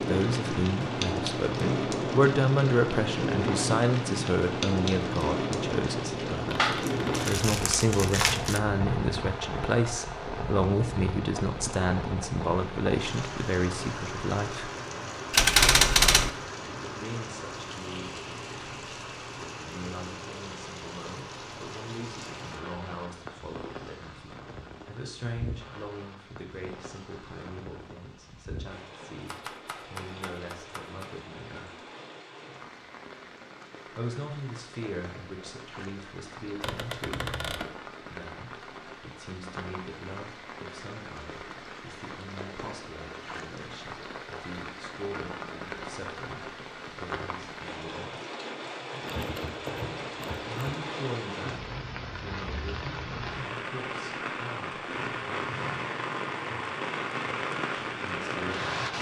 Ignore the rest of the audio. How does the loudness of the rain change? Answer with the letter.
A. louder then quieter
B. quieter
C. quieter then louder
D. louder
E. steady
C.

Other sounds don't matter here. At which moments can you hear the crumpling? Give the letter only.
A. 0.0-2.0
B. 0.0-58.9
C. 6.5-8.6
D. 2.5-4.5
C.